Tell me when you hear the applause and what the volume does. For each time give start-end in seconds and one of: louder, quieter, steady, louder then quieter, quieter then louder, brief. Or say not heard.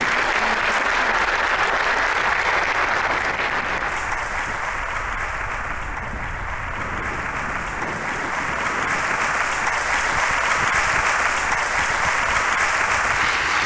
0.0-13.6 quieter then louder.